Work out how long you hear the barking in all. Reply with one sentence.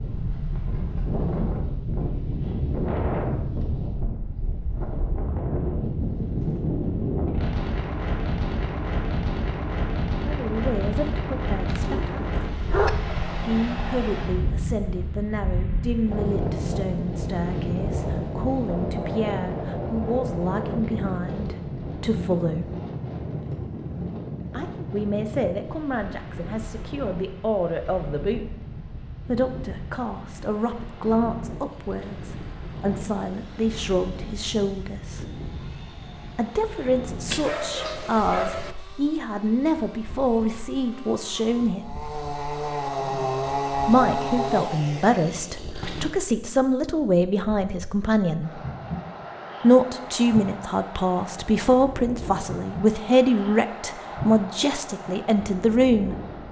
The barking can be heard for 3 seconds in total.